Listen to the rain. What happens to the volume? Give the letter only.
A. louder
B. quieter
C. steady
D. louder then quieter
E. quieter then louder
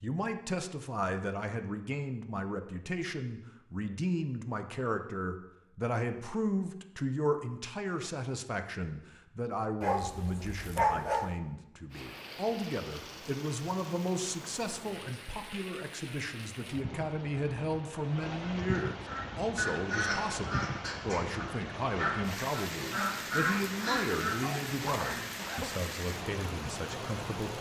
A.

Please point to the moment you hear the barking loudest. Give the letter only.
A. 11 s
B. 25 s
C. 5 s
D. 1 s
A.